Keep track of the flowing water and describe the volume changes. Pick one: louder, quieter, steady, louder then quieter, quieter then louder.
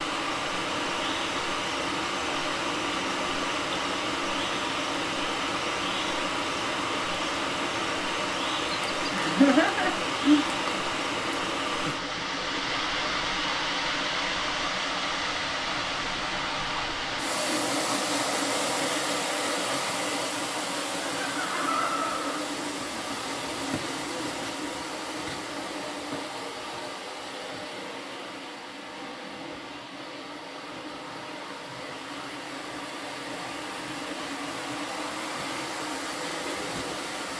quieter.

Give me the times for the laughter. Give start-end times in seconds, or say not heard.
9.1-10.5, 21.2-22.4.